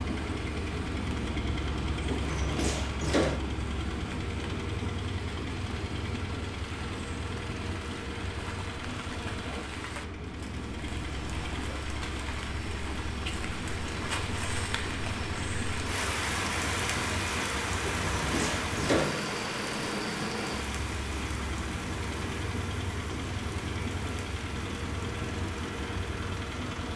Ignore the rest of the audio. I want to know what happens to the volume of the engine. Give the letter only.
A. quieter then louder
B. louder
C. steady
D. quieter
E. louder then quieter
C.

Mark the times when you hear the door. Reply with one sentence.
You can hear the door from 2.0 to 3.4 s and from 17.8 to 19.2 s.